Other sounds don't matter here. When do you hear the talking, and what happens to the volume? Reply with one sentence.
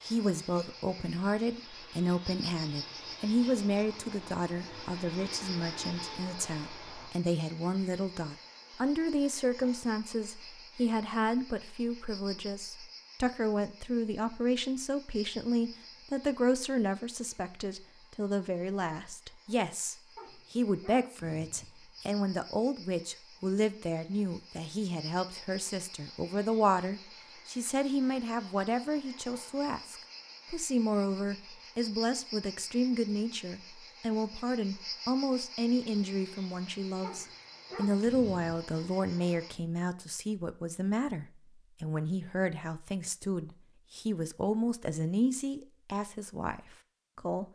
The talking can be heard from 0.0 to 47.5 s, at a steady volume.